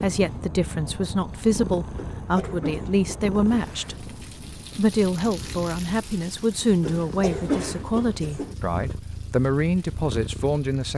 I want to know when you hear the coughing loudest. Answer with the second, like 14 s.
7 s.